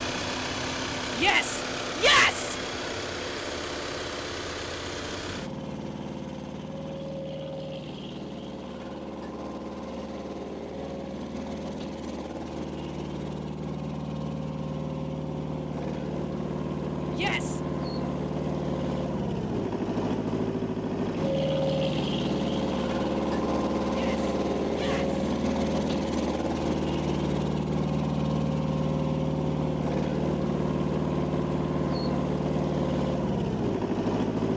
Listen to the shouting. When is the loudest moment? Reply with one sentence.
The volume of the shouting peaks at 2 seconds.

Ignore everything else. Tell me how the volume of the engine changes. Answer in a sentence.
The loudness of the engine goes up.